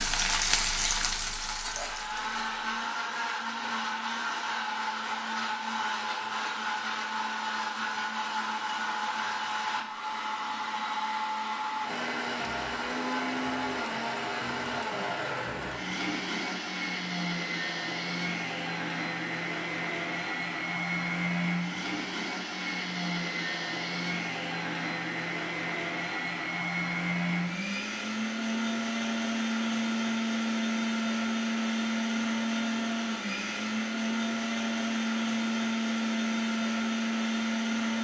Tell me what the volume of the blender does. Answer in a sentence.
The volume of the blender stays about the same.